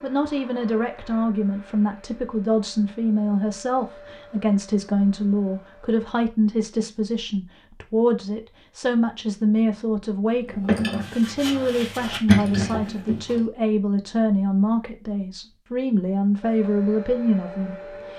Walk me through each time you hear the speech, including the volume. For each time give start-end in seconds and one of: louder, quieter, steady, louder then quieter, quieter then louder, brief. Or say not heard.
0.0-18.1 steady.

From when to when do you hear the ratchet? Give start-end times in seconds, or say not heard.
10.4-13.4.